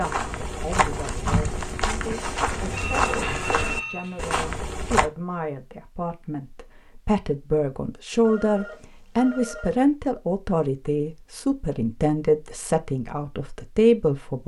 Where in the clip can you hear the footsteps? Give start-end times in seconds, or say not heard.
0.0-5.1.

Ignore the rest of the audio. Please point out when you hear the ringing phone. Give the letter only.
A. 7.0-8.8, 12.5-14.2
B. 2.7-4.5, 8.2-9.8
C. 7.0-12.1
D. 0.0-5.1
B.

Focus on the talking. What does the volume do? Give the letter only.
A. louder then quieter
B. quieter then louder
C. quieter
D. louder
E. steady
D.